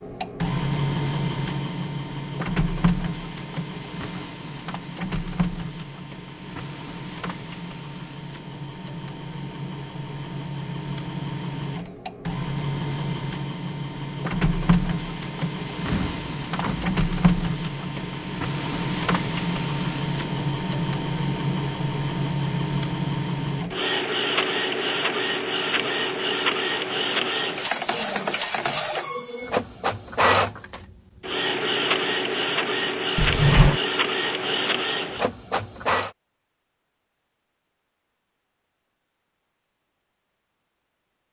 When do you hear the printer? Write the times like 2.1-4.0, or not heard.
0.0-36.1.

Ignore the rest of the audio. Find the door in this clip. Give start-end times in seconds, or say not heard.
15.9-16.9, 33.1-33.8.